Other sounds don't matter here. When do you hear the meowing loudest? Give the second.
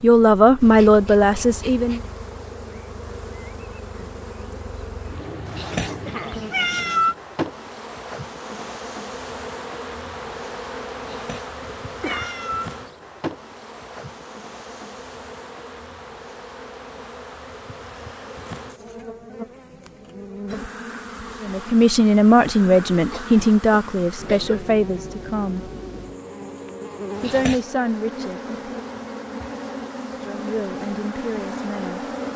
7 s.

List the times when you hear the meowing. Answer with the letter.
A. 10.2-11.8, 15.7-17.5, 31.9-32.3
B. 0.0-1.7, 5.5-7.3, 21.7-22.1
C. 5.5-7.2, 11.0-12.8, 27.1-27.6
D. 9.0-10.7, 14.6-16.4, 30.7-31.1
C.